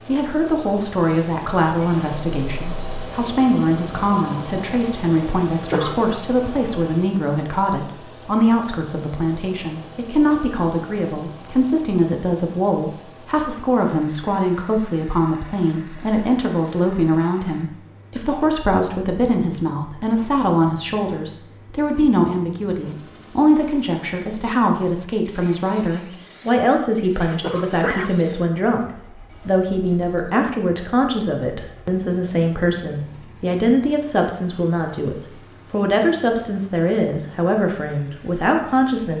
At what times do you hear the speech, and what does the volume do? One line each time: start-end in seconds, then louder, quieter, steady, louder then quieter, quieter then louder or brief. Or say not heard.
0.1-39.1 steady.